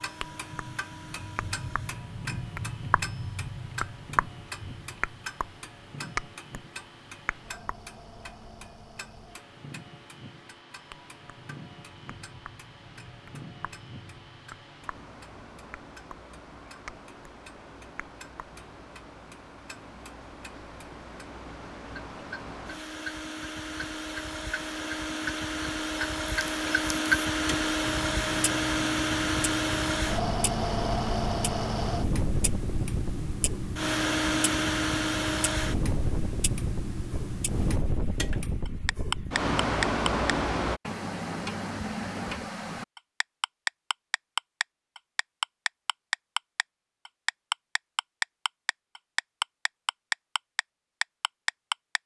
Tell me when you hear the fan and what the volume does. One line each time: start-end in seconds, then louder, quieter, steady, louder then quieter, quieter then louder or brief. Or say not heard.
0.0-40.8 louder.